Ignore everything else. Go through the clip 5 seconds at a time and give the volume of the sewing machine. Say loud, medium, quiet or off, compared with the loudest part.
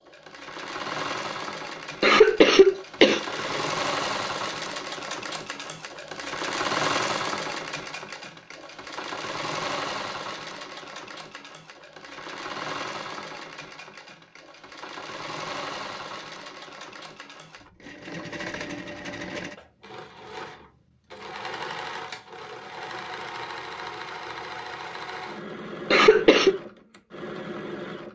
loud, loud, medium, medium, medium, medium.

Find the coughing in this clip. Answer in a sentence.
The coughing can be heard from 2.0 to 3.6 s and from 25.9 to 26.6 s.